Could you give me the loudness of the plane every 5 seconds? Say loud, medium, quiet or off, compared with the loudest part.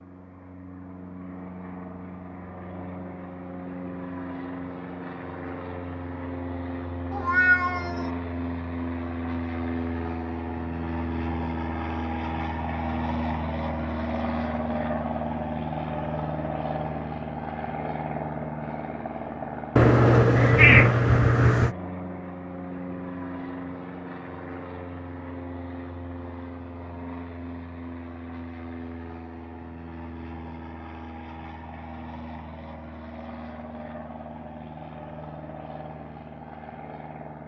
medium, loud, loud, loud, medium, medium, medium, medium.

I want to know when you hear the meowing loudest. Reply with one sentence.
The volume of the meowing peaks at 21 seconds.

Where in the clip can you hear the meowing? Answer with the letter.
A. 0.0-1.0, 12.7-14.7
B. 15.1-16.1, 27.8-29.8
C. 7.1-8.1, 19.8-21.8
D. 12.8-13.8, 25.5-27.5
C.